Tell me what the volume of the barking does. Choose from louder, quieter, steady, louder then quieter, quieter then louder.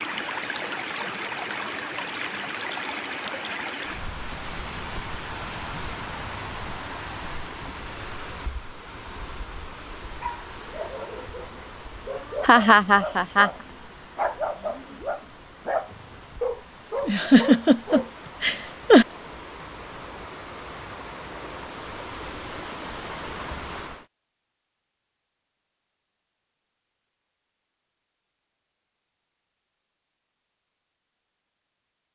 louder.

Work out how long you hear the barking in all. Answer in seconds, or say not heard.
8 s.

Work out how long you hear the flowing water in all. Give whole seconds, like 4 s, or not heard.
24 s.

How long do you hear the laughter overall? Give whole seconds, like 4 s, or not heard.
3 s.